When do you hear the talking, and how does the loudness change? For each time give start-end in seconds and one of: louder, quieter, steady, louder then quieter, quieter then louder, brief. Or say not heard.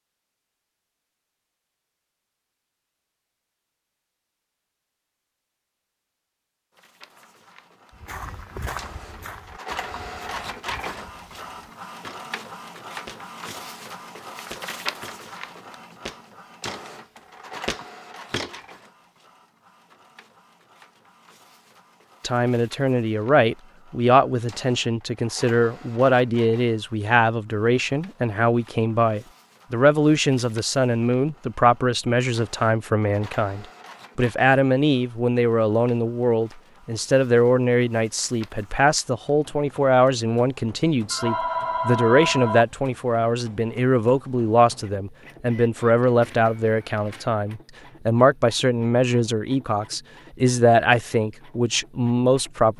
22.2-52.7 steady.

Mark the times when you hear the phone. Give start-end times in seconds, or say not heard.
41.1-42.6.